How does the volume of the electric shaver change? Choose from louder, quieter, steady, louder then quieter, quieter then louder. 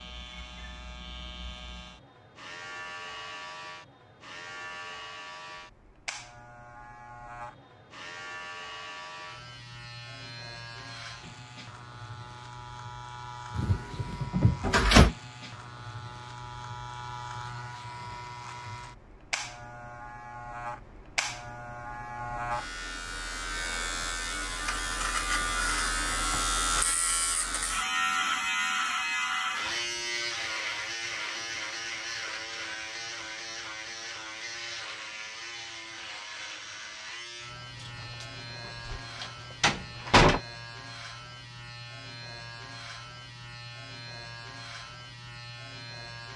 louder then quieter.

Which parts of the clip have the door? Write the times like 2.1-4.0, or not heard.
13.6-15.1, 37.8-38.2, 38.9-40.4.